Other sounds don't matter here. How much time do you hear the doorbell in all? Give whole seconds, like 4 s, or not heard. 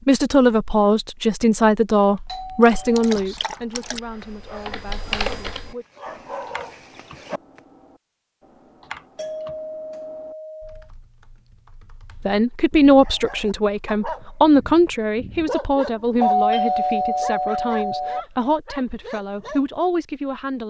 4 s.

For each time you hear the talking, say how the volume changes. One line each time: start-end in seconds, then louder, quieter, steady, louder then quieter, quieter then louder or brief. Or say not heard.
0.1-5.8 quieter
12.2-20.6 quieter.